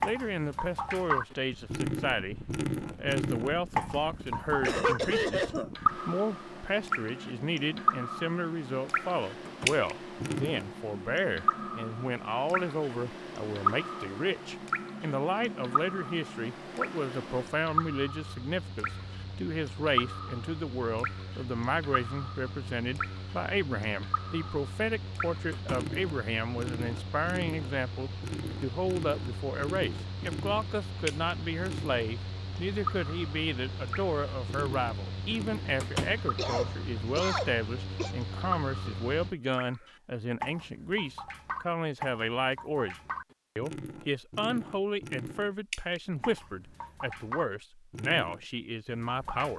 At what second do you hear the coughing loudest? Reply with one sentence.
The loudest moment of the coughing is at 5 seconds.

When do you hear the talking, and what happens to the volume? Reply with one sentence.
The talking can be heard briefly from 0.0 to 2.4 s; and from 3.0 to 49.5 s, at a steady volume.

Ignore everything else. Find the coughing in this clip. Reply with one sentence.
The coughing can be heard from 4.7 to 5.7 s and from 36.4 to 38.1 s.